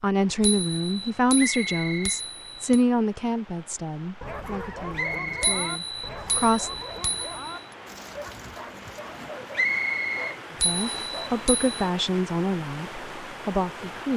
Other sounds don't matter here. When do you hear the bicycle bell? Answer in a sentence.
The bicycle bell can be heard from 0.4 to 2.8 s, from 5.4 to 7.3 s and from 10.6 to 11.8 s.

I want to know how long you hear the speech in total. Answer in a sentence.
The speech can be heard for 10 seconds in total.